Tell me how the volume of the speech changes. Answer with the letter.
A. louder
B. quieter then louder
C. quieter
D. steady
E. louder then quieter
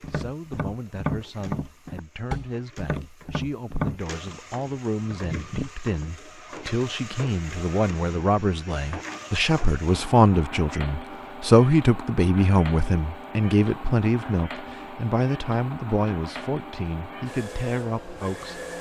E.